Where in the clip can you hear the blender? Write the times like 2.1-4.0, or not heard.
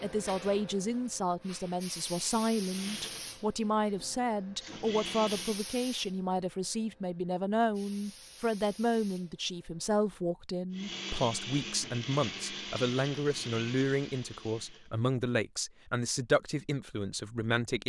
2.6-5.7, 10.7-14.9.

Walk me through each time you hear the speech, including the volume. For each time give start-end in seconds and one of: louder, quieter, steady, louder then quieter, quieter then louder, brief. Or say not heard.
0.0-17.8 steady.